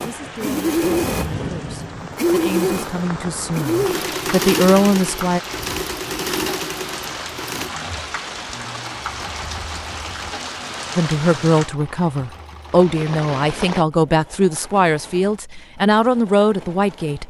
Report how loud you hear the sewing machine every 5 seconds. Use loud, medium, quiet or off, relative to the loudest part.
loud, medium, quiet, quiet.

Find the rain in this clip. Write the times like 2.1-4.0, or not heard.
0.0-13.8.